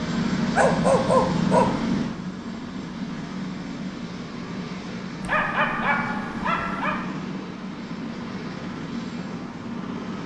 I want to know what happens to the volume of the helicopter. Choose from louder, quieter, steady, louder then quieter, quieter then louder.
quieter.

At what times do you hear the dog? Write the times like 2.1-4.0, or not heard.
0.6-1.8, 5.2-7.0.